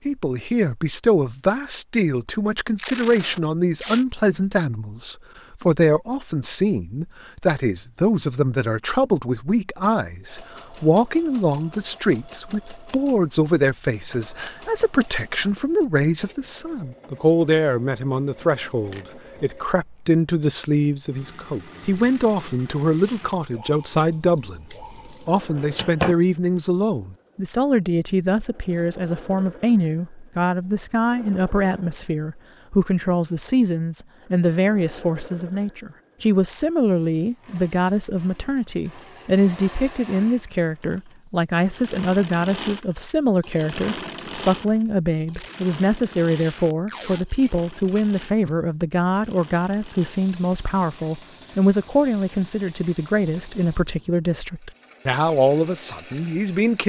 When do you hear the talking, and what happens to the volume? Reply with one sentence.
You can hear the talking from 0.1 to 56.8 s, at a steady volume.